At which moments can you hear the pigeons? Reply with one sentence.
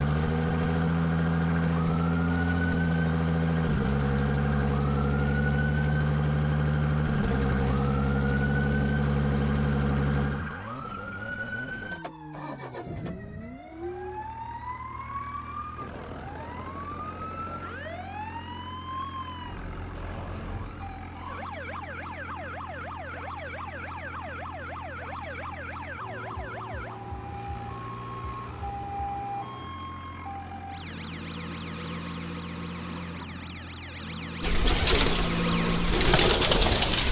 The pigeons can be heard from 34.4 to 37.0 s.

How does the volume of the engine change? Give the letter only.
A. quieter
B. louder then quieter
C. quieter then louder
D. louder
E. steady
A.